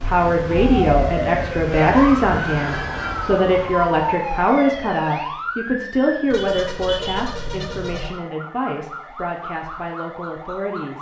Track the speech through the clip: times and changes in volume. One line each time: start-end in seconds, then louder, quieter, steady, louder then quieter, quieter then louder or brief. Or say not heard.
0.0-10.9 quieter.